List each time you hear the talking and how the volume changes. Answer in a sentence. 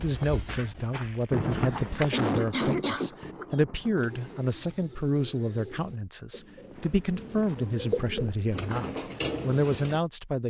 The talking can be heard from 0.0 to 10.4 s, at a steady volume.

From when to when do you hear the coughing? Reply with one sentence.
You can hear the coughing from 1.7 to 3.1 s.